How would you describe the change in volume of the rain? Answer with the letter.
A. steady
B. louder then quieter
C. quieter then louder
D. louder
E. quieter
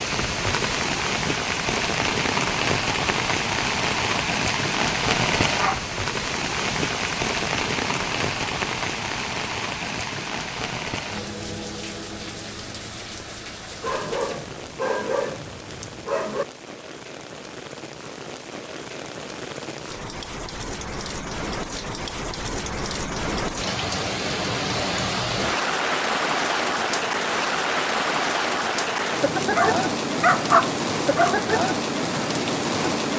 C.